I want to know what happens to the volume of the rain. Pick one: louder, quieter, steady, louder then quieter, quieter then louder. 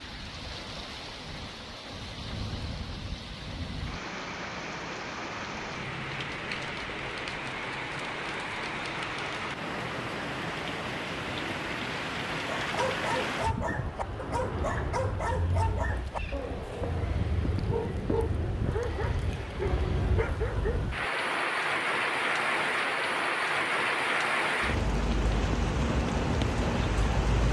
louder.